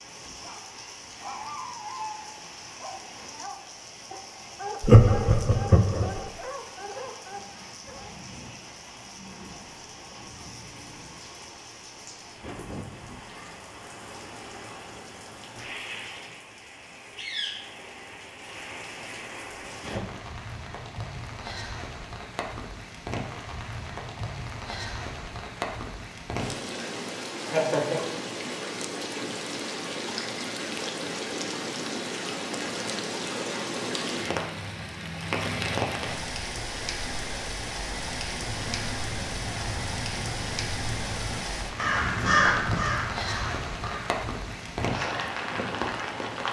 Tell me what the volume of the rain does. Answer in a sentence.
The loudness of the rain goes up.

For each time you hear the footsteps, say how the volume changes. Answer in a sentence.
The footsteps can't be heard in this clip.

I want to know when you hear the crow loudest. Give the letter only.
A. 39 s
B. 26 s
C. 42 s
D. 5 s
C.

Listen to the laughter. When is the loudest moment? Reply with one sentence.
The volume of the laughter peaks at 5 seconds.